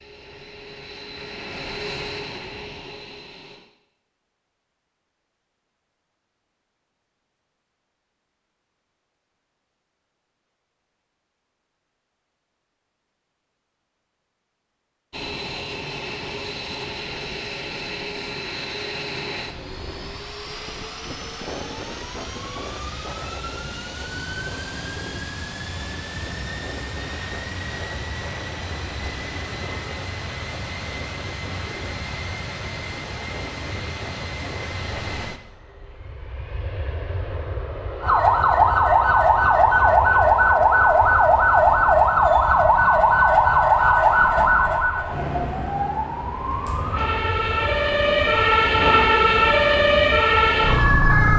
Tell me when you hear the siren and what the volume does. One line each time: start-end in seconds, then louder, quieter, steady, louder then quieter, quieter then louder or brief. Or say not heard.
38.0-51.3 quieter then louder.